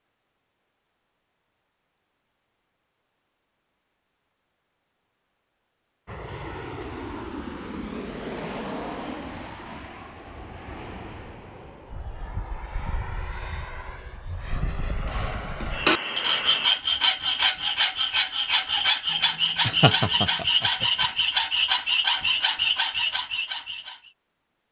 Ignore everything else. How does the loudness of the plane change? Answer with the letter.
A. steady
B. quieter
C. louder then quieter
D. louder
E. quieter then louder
E.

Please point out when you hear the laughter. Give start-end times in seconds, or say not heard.
19.6-21.1.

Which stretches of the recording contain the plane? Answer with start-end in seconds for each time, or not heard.
6.0-16.7.